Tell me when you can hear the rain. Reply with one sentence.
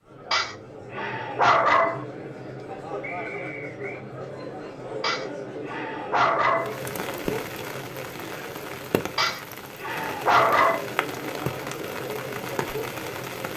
The rain can be heard from 6.6 to 13.5 s.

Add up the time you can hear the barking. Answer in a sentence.
You can hear the barking for 5 seconds altogether.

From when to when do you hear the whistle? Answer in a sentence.
The whistle can be heard from 3.0 to 4.0 s.